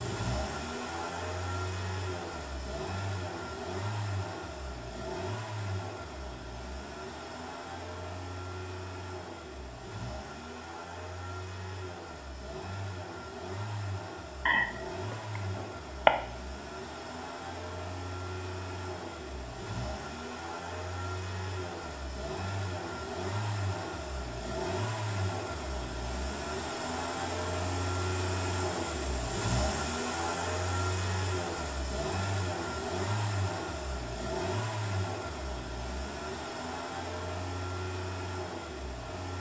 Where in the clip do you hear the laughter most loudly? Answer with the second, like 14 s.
16 s.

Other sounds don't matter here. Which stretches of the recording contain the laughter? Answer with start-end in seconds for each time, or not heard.
14.4-16.1.